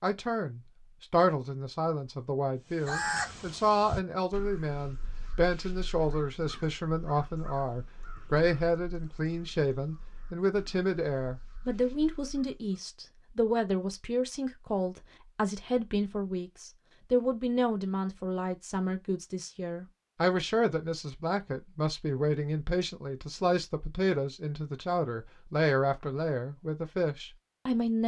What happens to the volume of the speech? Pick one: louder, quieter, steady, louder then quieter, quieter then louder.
steady.